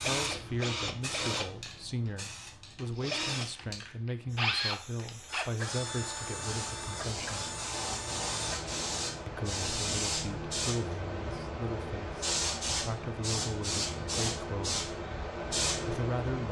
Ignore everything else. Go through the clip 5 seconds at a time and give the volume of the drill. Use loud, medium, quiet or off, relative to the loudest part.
loud, medium, off, off.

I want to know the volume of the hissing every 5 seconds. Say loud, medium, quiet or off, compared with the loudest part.
medium, loud, loud, loud.